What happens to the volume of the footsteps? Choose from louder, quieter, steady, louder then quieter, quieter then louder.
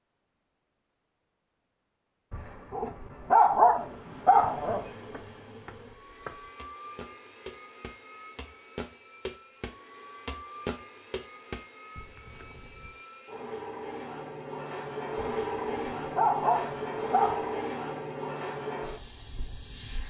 louder then quieter.